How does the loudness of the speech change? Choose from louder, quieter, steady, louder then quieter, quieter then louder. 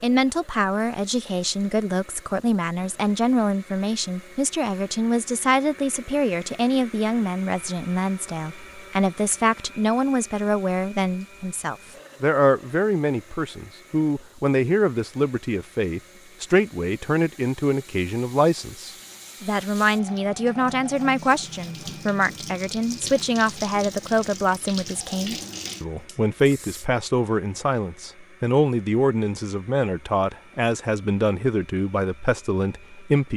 steady.